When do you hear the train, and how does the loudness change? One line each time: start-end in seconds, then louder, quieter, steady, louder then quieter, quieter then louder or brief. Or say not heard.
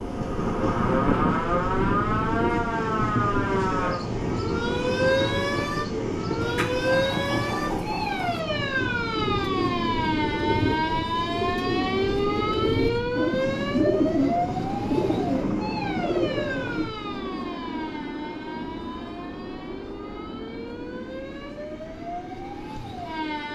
0.0-23.5 quieter.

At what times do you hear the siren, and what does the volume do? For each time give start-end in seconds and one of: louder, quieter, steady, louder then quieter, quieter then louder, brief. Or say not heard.
0.0-23.5 quieter.